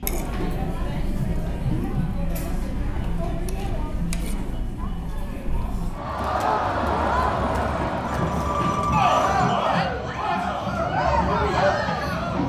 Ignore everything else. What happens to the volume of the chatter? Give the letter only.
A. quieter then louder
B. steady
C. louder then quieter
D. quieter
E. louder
E.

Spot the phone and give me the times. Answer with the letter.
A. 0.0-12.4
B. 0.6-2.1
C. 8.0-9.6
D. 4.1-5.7
C.